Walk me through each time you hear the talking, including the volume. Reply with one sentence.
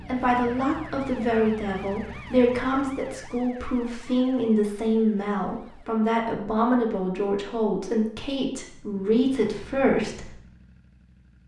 The talking can be heard from 0.0 to 10.3 s, at a steady volume.